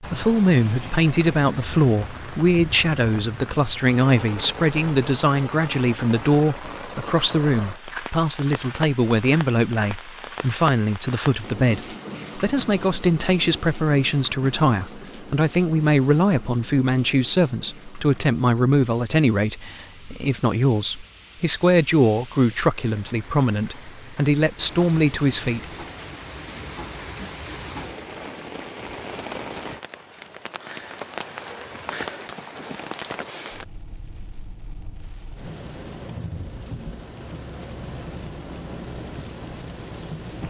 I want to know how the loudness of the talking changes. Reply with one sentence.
The loudness of the talking stays about the same.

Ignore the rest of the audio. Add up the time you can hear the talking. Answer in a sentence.
The talking can be heard for 26 seconds in total.